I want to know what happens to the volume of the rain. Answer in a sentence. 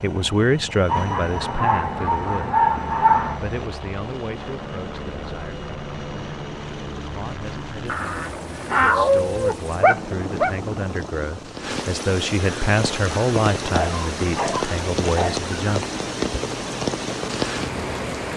The volume of the rain goes up.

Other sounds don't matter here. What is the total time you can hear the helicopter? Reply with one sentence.
You can hear the helicopter for 18 seconds altogether.